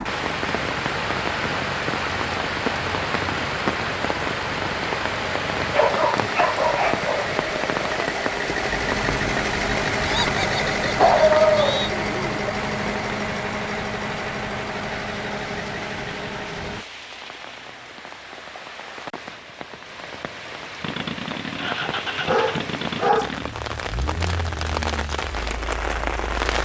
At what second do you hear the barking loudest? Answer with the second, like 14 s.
11 s.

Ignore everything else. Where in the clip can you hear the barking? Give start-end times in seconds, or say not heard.
5.7-7.3, 10.9-12.5, 21.9-23.3.